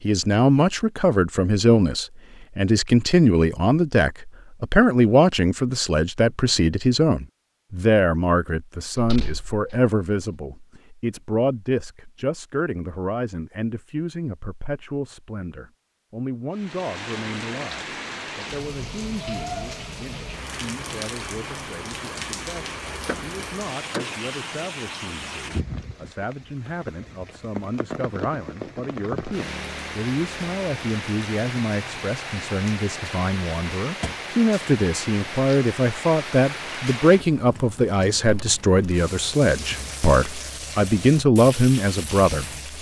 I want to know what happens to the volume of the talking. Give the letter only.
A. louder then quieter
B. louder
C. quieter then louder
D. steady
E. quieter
C.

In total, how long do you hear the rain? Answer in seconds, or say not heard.
26 s.